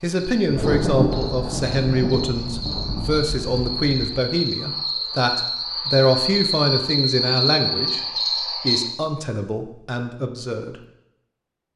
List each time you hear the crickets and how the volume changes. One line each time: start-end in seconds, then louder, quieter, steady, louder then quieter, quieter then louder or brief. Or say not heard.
0.0-8.8 louder.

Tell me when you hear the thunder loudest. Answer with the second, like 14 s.
1 s.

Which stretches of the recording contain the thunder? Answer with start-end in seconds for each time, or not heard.
0.5-4.2.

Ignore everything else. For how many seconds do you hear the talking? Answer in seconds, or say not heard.
10 s.